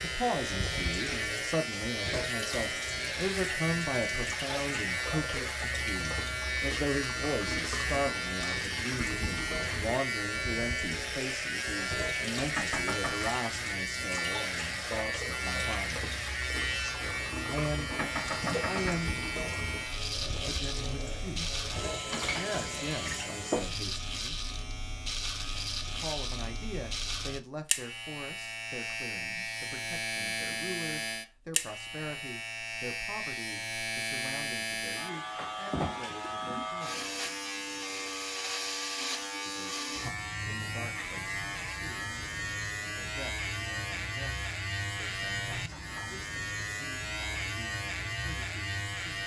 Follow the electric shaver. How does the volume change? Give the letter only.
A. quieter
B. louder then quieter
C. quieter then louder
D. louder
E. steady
E.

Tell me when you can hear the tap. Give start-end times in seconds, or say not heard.
0.0-23.4.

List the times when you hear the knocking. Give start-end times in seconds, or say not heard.
12.6-13.2, 17.9-19.0, 45.5-46.1.